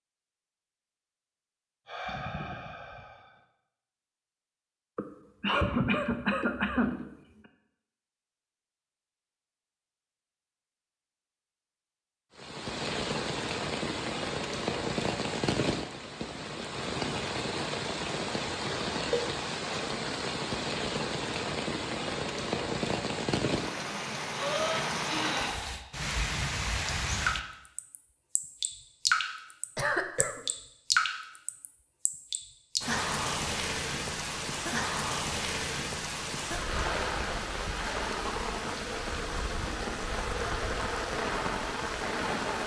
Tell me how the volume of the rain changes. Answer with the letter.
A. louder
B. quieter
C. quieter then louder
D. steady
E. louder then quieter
D.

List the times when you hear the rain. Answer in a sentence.
The rain can be heard from 12.3 to 42.6 s.